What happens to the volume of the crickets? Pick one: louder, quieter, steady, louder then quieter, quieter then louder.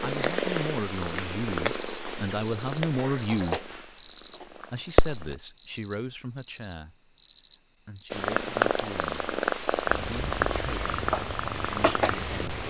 quieter.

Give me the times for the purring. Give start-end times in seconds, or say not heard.
0.0-5.3, 8.1-12.6.